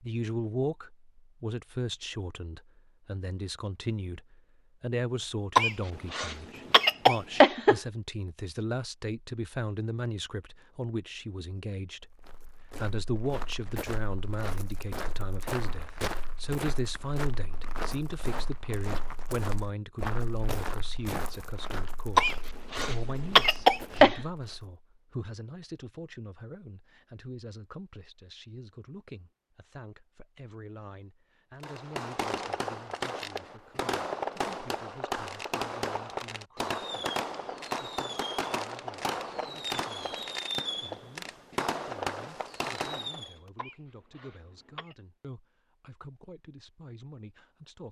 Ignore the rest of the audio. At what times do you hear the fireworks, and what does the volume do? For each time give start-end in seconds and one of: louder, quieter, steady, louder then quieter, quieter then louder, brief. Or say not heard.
31.6-43.4 steady.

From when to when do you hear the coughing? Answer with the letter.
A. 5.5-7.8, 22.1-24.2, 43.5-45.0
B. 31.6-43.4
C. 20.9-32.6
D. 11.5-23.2
A.